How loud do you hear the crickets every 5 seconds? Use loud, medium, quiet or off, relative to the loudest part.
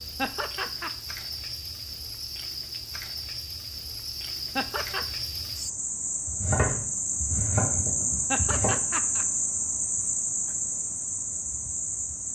medium, loud, loud.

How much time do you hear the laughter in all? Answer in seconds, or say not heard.
2 s.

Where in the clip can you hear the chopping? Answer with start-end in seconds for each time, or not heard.
6.2-8.8.